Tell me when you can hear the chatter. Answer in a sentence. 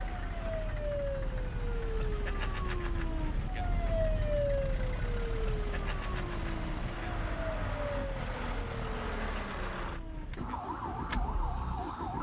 The chatter can't be heard in this clip.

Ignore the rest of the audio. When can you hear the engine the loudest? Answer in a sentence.
The volume of the engine peaks at 9 seconds.